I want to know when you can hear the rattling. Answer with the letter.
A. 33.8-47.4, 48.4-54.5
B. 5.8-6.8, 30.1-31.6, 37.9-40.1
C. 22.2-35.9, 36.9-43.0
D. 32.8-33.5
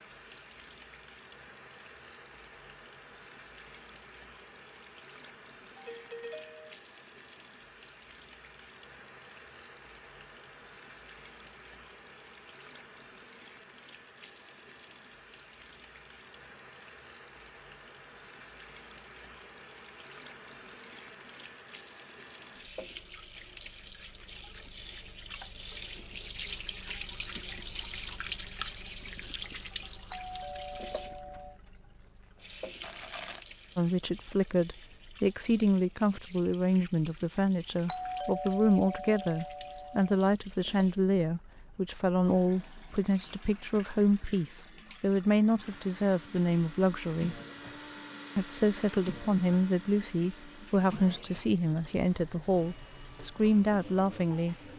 D.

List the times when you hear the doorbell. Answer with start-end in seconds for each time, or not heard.
5.8-6.8, 30.1-31.6, 37.9-40.1.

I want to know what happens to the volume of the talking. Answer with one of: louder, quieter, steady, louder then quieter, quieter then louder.
steady.